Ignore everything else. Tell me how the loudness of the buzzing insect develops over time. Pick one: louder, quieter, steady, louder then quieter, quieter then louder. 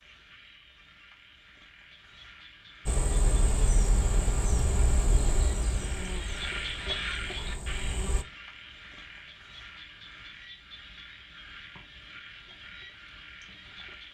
quieter.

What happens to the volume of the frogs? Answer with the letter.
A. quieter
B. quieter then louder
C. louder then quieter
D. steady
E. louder
C.